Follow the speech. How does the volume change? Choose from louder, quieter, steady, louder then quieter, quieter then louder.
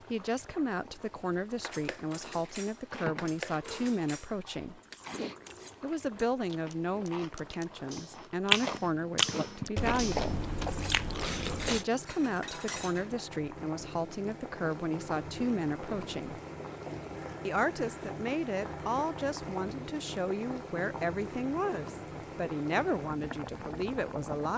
steady.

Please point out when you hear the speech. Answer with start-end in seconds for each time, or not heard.
0.1-4.8, 5.8-10.4, 11.6-16.4, 17.4-24.5.